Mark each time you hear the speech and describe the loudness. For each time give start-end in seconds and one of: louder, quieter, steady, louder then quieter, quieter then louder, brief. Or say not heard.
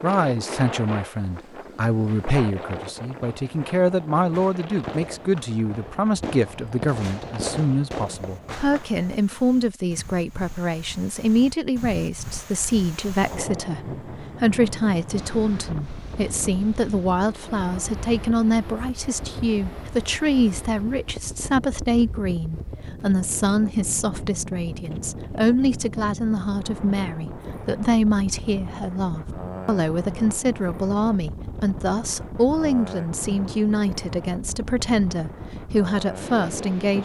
0.0-36.9 steady.